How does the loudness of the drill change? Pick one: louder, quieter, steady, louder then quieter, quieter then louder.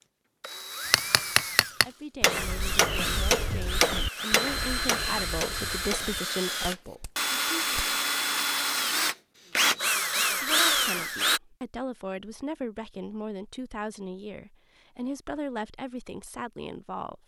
louder.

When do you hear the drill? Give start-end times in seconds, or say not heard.
0.0-11.4.